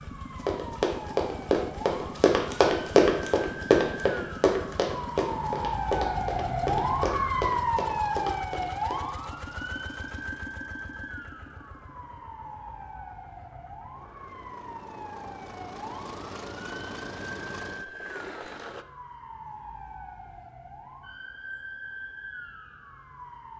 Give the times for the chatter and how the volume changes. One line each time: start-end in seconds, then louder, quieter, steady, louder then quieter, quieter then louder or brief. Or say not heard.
not heard.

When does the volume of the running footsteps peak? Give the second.
3 s.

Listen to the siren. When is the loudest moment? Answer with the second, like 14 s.
7 s.